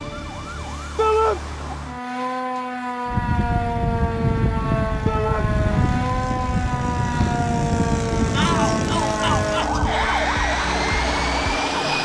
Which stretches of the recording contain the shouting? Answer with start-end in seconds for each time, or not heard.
0.9-1.4, 5.0-5.5, 8.3-10.2.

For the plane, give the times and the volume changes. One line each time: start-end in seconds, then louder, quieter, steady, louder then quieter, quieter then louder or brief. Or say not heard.
3.0-12.0 steady.